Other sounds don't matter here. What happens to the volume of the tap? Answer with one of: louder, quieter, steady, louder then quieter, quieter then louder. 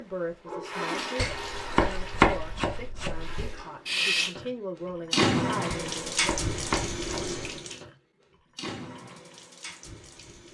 louder then quieter.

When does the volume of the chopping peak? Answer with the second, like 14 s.
2 s.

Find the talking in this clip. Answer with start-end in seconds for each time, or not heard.
0.0-6.3.